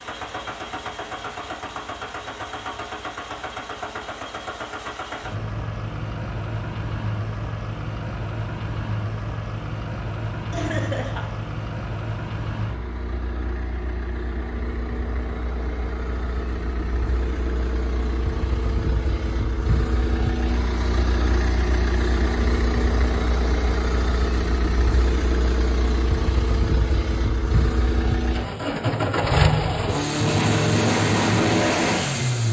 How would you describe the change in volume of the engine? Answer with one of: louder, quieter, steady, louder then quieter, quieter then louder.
louder.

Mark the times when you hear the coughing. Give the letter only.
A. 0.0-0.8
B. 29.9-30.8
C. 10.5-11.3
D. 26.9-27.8
C.